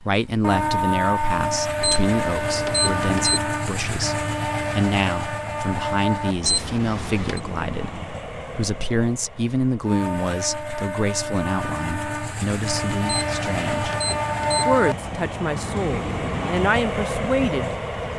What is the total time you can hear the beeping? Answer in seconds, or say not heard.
4 s.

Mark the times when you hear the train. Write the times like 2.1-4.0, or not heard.
0.4-18.1.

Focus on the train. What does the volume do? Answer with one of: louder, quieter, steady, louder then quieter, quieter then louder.
quieter then louder.